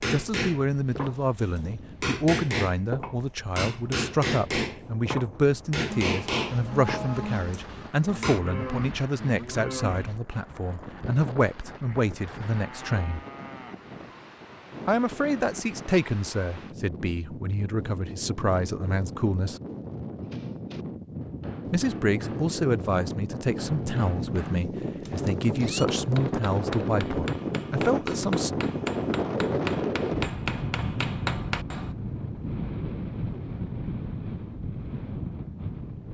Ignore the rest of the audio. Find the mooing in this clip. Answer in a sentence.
The mooing can be heard from 5.8 to 13.9 s.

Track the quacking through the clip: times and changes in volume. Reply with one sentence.
You can't hear the quacking here.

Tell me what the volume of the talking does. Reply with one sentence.
The volume of the talking stays about the same.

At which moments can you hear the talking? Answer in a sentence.
The talking can be heard from 0.1 to 13.2 s, from 14.8 to 19.6 s and from 21.7 to 28.5 s.